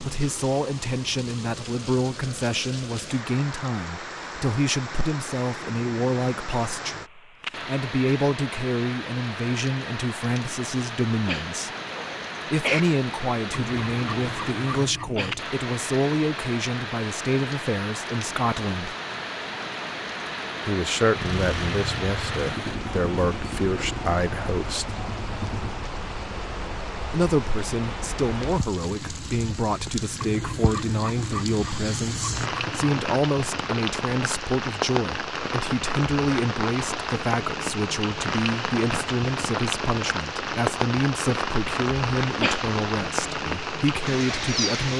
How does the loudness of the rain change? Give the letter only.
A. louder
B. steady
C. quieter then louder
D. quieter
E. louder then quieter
A.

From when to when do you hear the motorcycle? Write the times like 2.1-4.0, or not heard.
21.1-25.8.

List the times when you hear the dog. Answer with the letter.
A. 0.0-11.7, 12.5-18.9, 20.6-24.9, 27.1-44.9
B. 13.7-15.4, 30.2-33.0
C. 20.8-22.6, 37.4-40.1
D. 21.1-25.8
B.